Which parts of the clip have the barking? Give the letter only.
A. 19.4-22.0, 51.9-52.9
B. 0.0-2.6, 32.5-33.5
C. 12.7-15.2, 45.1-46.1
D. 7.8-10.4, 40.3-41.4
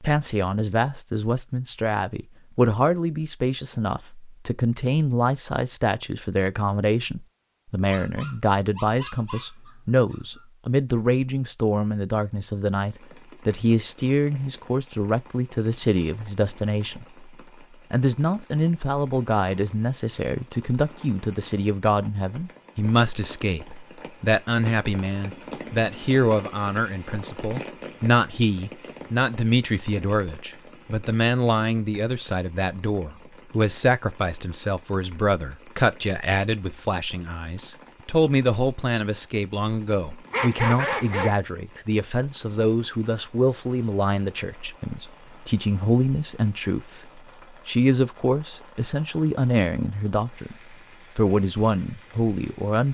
D.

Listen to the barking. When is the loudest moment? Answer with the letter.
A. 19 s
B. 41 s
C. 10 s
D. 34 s
B.